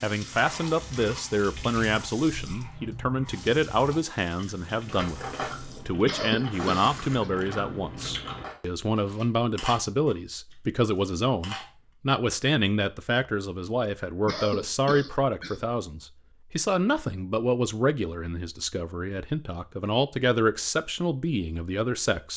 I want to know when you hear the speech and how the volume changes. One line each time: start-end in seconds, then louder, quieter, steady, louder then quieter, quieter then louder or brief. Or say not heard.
0.0-22.3 steady.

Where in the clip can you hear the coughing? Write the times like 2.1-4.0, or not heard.
6.0-7.3, 14.2-15.6.